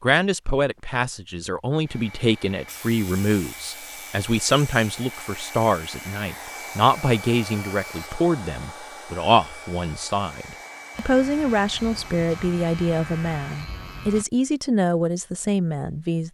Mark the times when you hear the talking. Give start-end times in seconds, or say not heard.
0.0-16.2.